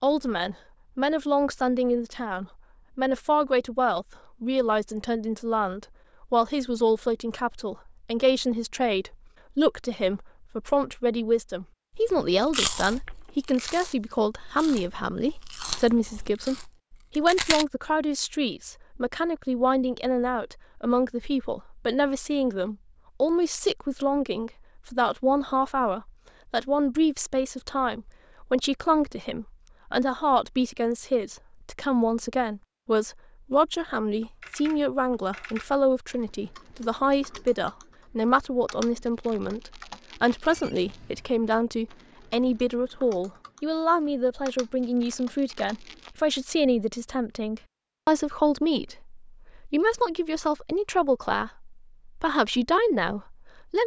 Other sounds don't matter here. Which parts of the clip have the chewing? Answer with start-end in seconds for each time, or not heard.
11.9-17.6.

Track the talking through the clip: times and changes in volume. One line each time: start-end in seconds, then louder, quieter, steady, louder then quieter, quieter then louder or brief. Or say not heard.
0.0-16.6 steady
17.1-53.8 steady.